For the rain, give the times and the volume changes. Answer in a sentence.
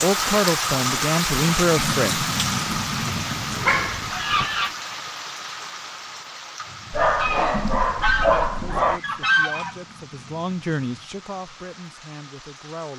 You can hear the rain from 0.0 to 12.9 s, getting quieter.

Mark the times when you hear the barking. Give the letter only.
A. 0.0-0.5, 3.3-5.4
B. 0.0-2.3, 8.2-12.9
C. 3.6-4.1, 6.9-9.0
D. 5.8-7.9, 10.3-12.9
C.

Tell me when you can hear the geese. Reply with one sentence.
The geese can be heard from 2.6 to 4.8 s and from 7.2 to 9.8 s.